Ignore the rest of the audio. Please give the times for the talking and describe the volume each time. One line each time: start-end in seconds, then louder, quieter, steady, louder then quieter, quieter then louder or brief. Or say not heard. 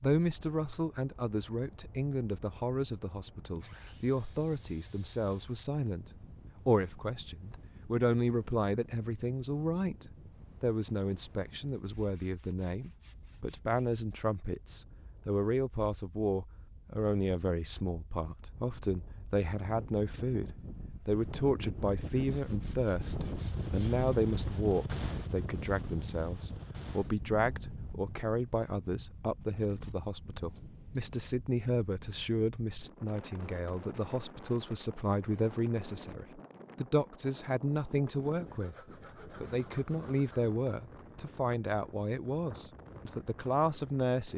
0.0-44.3 steady.